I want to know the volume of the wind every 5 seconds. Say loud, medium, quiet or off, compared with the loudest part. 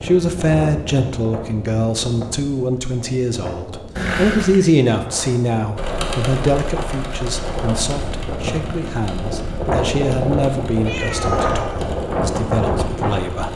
medium, medium, loud.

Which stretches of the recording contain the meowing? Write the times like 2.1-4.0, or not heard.
4.0-4.6, 10.8-11.8.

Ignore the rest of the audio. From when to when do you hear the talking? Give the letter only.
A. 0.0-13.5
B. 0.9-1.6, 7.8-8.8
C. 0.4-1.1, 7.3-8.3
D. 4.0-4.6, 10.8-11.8
A.